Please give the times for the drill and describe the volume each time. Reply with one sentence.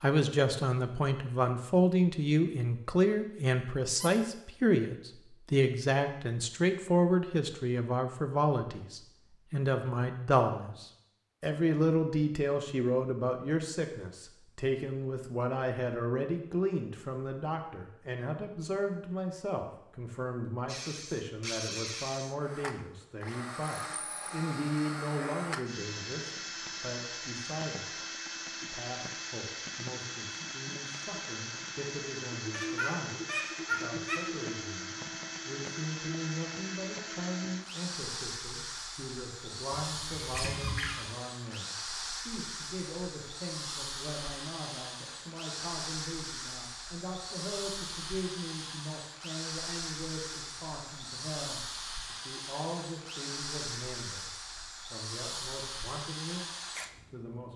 You can hear the drill from 20.6 to 57.5 s, at a steady volume.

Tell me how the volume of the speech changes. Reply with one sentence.
The volume of the speech goes down.